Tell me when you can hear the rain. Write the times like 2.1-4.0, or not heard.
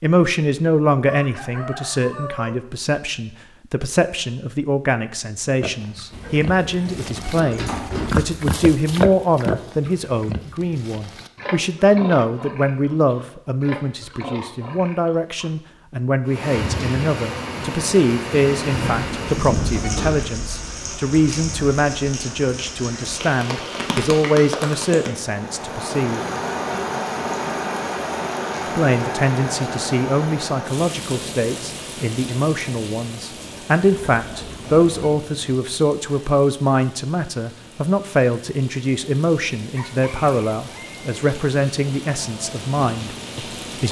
16.2-43.8.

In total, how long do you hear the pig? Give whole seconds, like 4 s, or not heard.
10 s.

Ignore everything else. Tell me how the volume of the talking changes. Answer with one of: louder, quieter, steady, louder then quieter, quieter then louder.
steady.